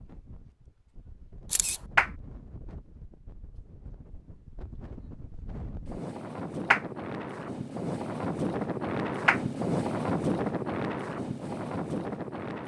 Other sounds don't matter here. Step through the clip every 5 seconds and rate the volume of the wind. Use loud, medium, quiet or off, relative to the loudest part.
quiet, loud, loud.